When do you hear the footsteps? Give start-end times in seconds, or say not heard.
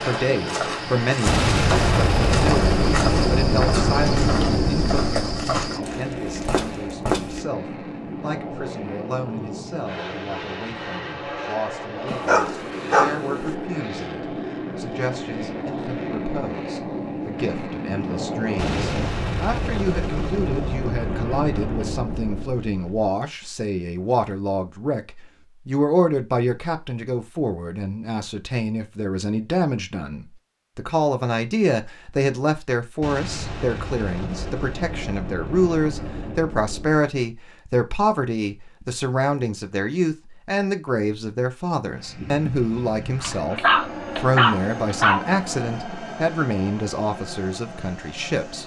0.0-7.5.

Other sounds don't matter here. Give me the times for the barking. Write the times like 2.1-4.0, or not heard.
12.1-13.6, 43.2-45.2.